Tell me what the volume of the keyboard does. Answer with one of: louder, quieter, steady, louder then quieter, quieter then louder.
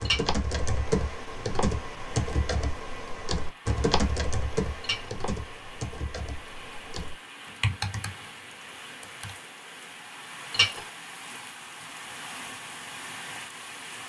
quieter then louder.